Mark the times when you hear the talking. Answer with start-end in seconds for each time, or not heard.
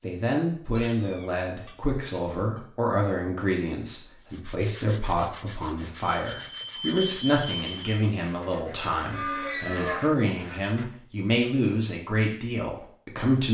0.0-13.4.